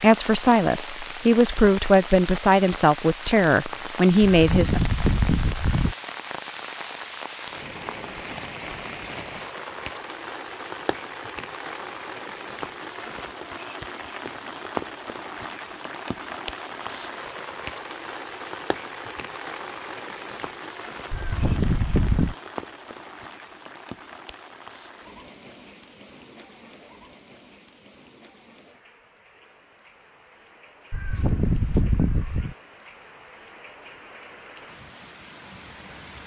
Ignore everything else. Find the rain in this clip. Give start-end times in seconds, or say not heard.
0.0-36.2.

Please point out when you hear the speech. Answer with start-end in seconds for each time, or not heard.
0.0-4.8.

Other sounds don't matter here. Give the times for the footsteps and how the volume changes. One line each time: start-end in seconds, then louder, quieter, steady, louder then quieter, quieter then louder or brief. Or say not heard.
not heard.